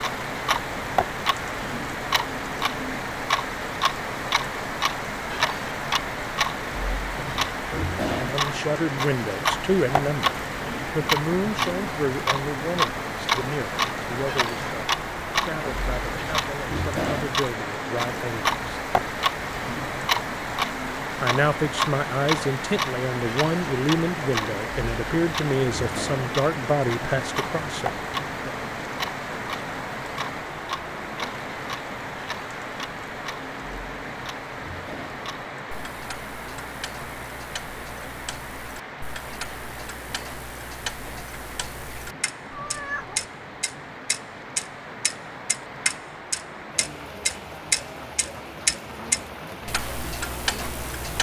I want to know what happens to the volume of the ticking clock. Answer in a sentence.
The volume of the ticking clock goes down, then up.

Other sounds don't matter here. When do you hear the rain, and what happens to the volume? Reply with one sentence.
The rain can be heard from 0.0 to 51.1 s, getting quieter.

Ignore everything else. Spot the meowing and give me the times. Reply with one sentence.
You can hear the meowing from 42.5 to 43.2 s.